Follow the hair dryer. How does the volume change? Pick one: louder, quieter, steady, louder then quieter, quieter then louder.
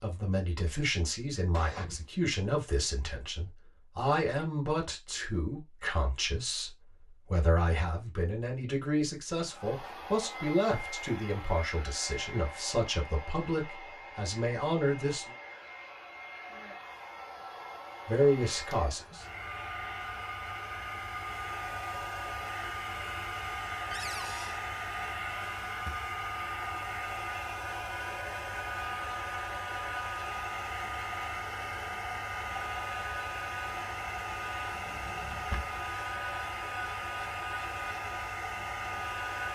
louder.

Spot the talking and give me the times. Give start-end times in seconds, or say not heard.
0.0-15.3, 18.1-19.2.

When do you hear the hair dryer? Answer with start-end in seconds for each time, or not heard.
9.4-39.5.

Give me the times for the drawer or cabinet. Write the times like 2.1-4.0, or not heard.
1.5-2.1, 23.9-24.6, 34.7-35.9.